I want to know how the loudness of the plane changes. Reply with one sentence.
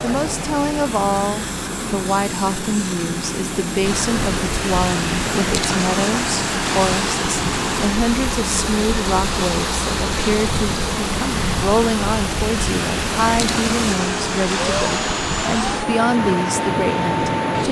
The loudness of the plane stays about the same.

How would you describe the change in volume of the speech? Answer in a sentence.
The volume of the speech stays about the same.